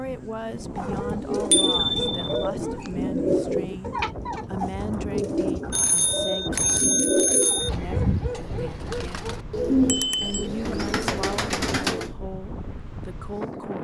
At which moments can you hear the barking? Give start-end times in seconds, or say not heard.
0.8-2.9, 7.4-9.4.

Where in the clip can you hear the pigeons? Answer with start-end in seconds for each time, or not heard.
0.8-12.2.